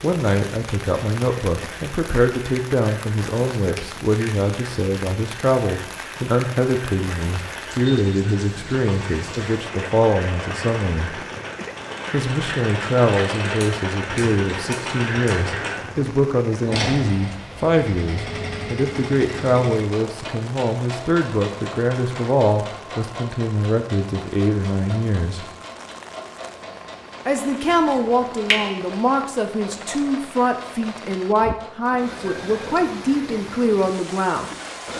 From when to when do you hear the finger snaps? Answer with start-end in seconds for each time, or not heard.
3.8-4.3, 13.6-15.4, 27.6-28.6.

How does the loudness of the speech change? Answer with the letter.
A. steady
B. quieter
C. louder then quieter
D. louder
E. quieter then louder
A.